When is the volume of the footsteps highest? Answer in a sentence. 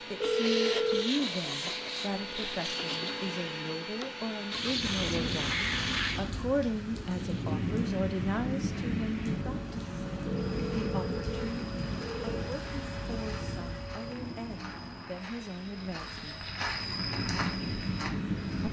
The volume of the footsteps peaks at 17 seconds.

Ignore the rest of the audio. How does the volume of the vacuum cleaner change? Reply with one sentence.
The volume of the vacuum cleaner goes down.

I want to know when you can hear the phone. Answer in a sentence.
The phone can be heard from 0.2 to 1.1 s and from 10.2 to 12.3 s.